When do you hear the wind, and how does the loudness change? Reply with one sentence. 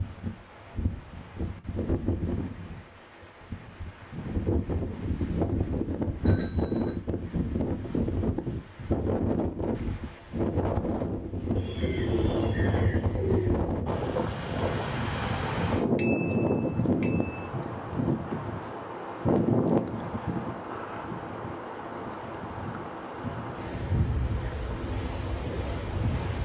You can hear the wind from 0.0 to 26.4 s, getting louder then quieter.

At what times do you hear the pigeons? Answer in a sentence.
The pigeons can be heard from 11.6 to 13.6 s.